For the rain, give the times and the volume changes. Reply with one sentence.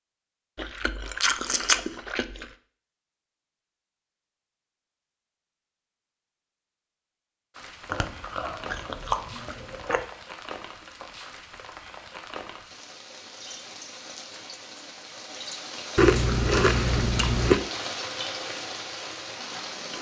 The rain can be heard from 7.5 to 19.9 s, getting louder.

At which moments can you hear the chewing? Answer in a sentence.
You can hear the chewing from 0.6 to 2.5 s, from 7.9 to 10.1 s and from 15.9 to 17.6 s.